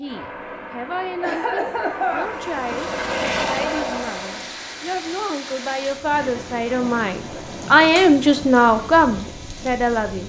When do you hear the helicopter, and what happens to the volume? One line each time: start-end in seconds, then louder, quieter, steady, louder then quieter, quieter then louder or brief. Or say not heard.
0.0-4.5 louder.